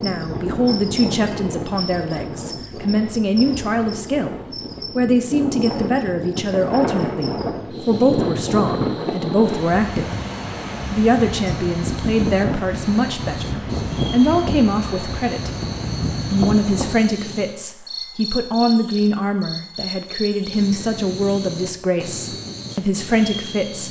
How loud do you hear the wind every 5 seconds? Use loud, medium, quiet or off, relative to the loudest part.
medium, loud, loud, loud, off.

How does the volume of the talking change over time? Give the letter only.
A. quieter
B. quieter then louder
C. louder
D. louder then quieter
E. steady
E.